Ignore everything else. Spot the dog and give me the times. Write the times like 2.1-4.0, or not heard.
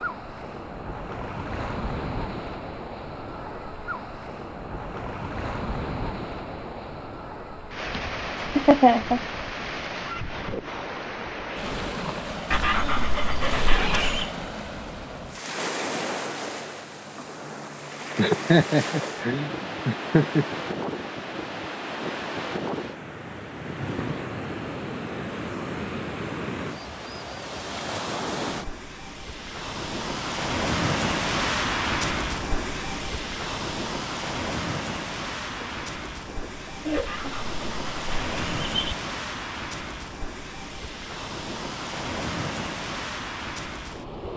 12.5-14.3, 36.9-39.0.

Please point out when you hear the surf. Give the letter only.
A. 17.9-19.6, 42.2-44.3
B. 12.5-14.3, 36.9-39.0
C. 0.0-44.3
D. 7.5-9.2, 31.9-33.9
C.